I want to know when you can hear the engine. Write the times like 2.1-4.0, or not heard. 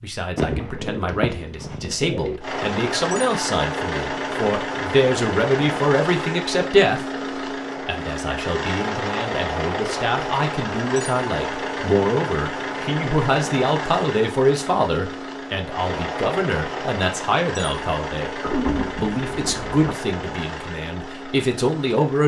2.4-22.2.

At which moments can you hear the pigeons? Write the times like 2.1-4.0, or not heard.
0.3-2.4, 18.4-19.9.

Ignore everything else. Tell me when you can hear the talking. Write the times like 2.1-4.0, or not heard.
0.0-7.0, 7.8-18.3, 18.9-22.2.